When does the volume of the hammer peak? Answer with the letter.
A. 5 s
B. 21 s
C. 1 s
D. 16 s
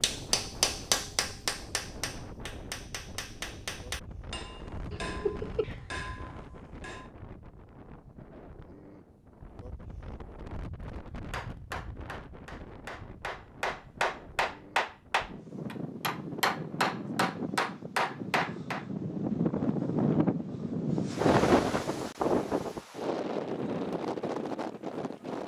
C.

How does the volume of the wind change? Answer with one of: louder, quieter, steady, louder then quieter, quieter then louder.
louder.